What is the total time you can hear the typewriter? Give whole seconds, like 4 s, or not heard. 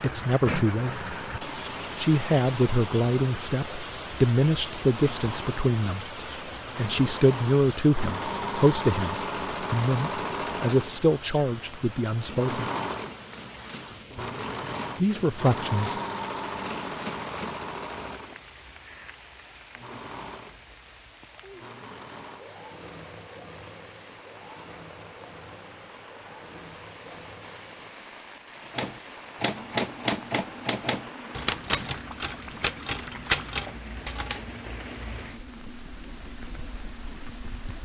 11 s.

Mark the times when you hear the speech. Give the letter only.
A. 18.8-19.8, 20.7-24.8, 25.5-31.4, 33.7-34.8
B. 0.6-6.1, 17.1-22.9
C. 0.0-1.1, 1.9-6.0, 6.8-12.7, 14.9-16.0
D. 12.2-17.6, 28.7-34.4
C.